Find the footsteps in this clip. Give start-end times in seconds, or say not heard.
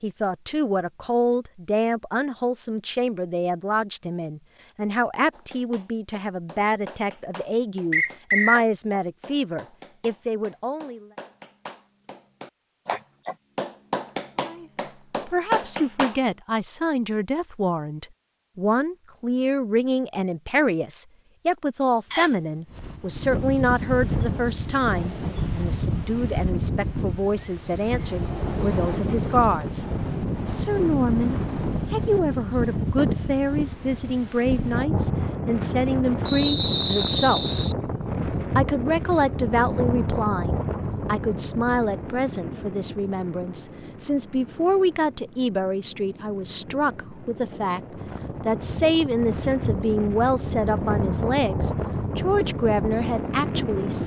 not heard.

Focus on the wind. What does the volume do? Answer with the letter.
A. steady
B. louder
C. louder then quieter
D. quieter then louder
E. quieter
D.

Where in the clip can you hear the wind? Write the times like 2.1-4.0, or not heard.
22.7-54.0.